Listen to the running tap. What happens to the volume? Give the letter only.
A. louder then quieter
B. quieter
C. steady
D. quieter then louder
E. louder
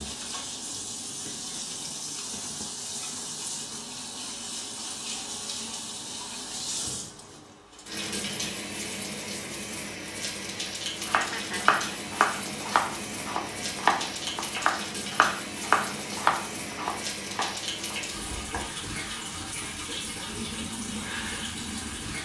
C.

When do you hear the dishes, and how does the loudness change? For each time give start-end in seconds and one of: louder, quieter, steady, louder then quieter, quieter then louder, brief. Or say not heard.
not heard.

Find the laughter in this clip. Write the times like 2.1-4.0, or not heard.
11.0-12.0.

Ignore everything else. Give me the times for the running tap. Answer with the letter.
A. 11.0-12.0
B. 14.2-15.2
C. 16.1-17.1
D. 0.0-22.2
D.